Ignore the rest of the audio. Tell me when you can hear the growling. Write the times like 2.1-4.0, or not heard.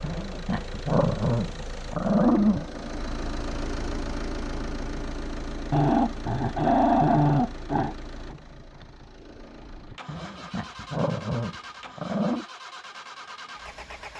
0.0-2.6, 5.7-8.0, 10.1-12.4.